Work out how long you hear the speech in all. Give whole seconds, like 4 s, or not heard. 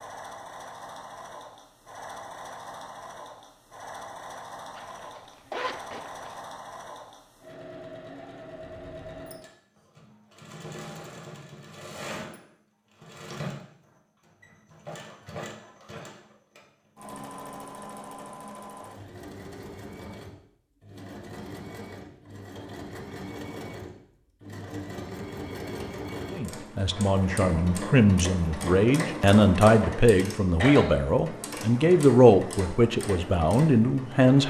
8 s.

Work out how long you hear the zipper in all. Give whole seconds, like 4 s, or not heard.
2 s.